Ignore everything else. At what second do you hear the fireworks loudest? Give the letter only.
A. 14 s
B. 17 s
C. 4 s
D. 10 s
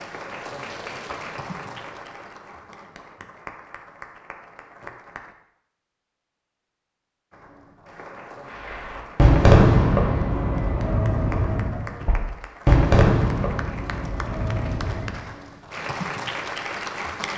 D.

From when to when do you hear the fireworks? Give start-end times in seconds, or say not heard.
8.5-15.2.